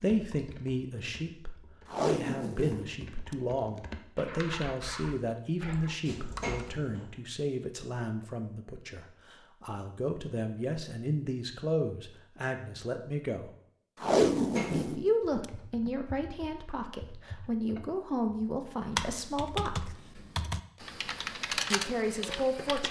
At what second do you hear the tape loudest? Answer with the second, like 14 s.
14 s.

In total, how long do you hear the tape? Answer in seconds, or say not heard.
4 s.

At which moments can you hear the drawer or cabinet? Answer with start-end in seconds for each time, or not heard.
6.0-7.1, 14.3-15.1.